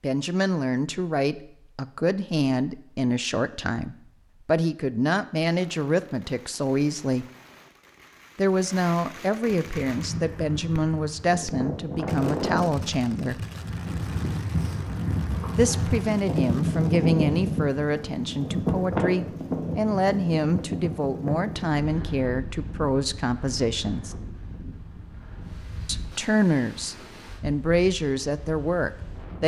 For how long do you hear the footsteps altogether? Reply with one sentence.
The footsteps can't be heard in this clip.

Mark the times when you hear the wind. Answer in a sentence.
The wind can be heard from 9.8 to 29.4 s.